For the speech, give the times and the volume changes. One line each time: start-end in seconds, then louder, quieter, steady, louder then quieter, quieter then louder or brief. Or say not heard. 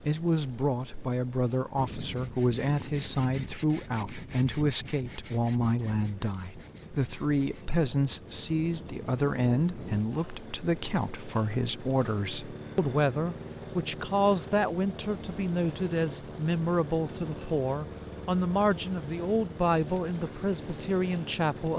0.1-21.7 steady.